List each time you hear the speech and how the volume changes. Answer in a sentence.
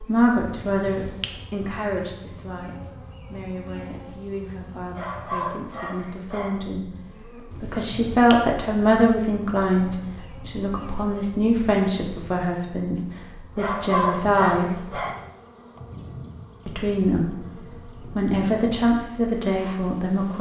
The speech can be heard from 0.0 to 14.9 s, getting quieter then louder; briefly from 16.6 to 17.4 s; and briefly from 18.1 to 20.3 s.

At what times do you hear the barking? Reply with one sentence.
You can hear the barking from 5.0 to 6.7 s and from 13.6 to 15.2 s.